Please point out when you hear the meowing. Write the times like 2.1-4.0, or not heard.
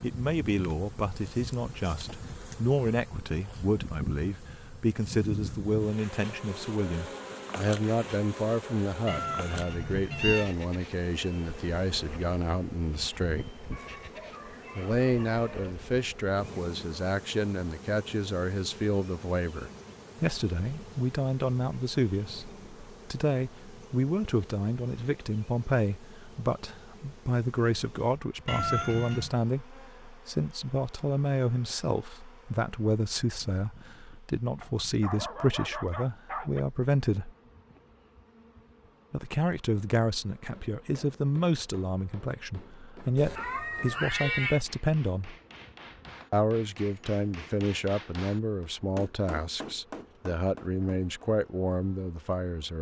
9.1-10.5, 28.4-29.3, 43.1-44.6.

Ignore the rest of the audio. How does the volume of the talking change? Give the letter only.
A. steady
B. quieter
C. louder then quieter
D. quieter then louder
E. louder
A.